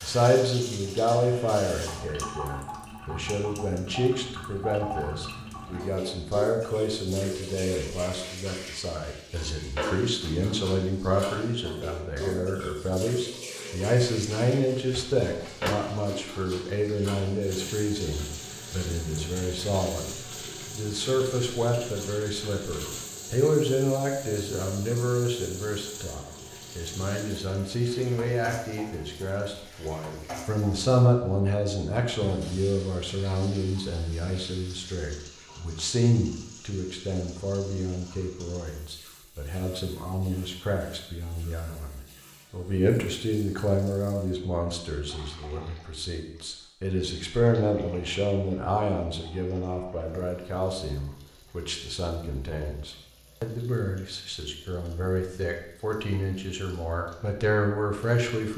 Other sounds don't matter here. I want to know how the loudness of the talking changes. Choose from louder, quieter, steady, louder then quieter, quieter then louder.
steady.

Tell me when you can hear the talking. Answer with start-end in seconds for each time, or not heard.
0.0-58.5.